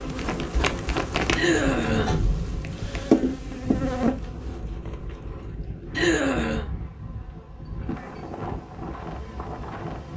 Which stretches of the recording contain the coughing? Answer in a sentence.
The coughing can be heard from 1.4 to 2.3 s and from 6.0 to 6.7 s.